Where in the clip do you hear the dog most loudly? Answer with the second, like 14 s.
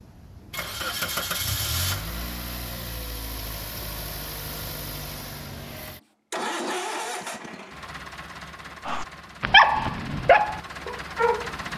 10 s.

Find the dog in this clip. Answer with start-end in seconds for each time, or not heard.
8.8-11.5.